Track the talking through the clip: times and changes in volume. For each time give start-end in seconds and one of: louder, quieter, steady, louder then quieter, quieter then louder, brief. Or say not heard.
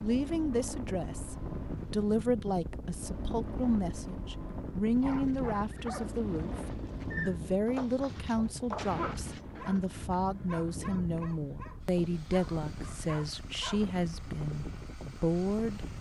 0.0-15.8 steady.